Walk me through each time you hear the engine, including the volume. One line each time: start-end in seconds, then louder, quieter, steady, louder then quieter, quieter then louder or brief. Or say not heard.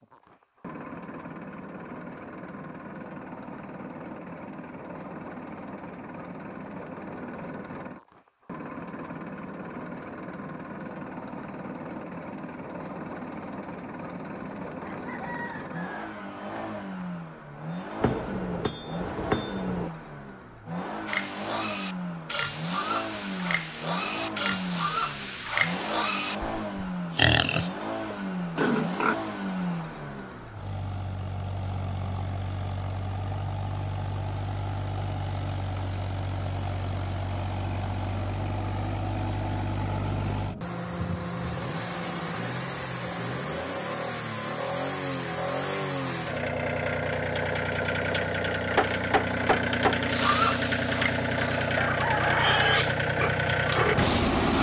0.0-54.5 louder.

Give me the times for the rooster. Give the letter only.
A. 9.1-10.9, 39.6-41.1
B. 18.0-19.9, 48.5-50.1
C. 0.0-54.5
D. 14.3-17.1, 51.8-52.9
D.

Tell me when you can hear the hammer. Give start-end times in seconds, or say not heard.
18.0-19.9, 48.5-50.1.